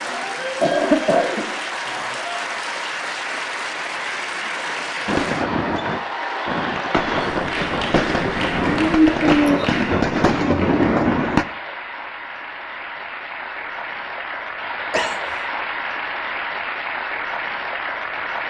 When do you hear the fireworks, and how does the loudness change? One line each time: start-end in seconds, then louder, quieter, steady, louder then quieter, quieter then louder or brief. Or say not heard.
5.0-11.4 louder.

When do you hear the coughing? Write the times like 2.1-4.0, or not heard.
0.6-2.1, 8.7-9.8, 14.9-15.4.